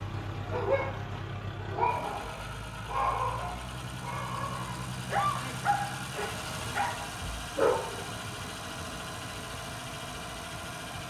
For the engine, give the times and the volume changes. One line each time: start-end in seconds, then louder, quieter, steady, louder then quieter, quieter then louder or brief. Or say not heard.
0.0-11.0 steady.